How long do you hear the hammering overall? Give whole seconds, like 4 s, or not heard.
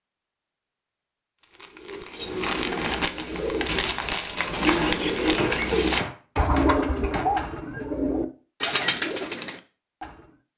2 s.